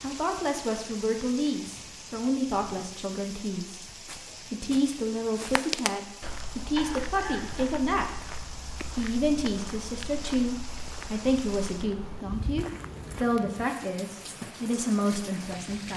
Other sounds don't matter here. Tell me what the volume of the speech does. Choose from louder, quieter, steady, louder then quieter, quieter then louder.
steady.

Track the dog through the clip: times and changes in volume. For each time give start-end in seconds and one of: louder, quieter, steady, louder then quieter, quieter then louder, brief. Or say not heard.
not heard.